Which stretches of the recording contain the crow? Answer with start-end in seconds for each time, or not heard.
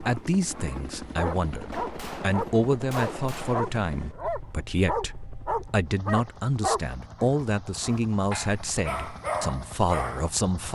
not heard.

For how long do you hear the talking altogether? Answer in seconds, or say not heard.
11 s.